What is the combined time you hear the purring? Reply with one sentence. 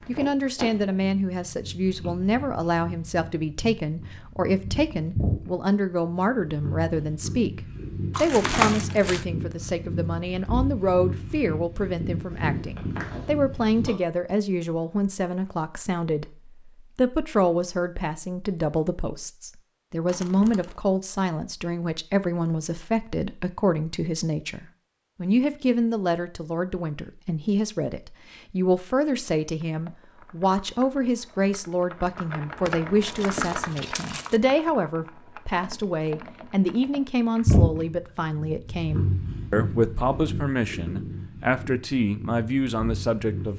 You can hear the purring for 20 seconds altogether.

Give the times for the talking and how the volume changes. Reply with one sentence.
You can hear the talking from 0.1 to 43.5 s, at a steady volume.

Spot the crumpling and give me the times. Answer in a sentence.
You can hear the crumpling from 8.1 to 9.2 s, from 20.1 to 20.8 s and from 32.6 to 34.4 s.